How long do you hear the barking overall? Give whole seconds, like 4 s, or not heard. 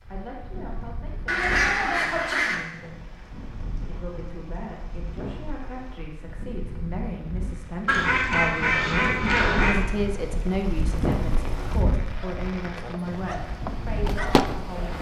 3 s.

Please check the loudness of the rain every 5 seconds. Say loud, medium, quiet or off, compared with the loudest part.
medium, medium, loud.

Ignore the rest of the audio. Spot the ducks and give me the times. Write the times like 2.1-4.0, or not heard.
1.2-2.5, 7.8-9.8.